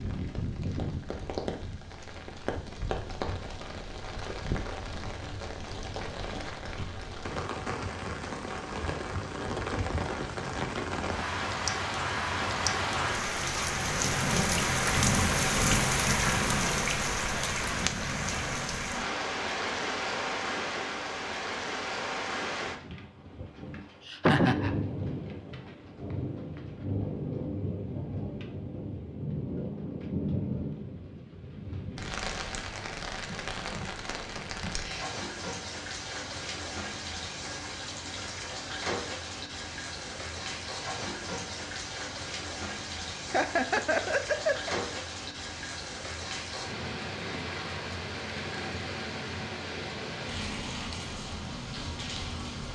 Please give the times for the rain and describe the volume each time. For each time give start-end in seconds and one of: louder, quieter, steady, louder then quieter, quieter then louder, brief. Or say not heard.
0.0-52.6 louder then quieter.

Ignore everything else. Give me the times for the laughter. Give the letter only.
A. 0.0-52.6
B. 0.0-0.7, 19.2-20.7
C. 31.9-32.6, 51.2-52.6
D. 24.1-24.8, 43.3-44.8
D.